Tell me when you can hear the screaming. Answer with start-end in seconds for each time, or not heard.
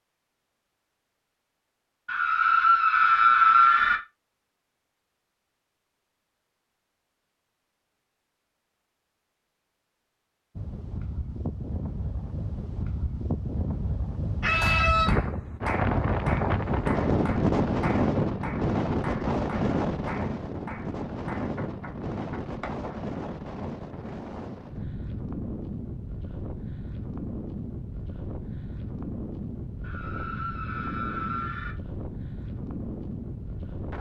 2.0-4.0, 14.4-15.2, 29.8-31.8.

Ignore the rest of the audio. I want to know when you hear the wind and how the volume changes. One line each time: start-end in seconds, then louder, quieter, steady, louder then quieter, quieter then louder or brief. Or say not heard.
10.6-33.9 louder then quieter.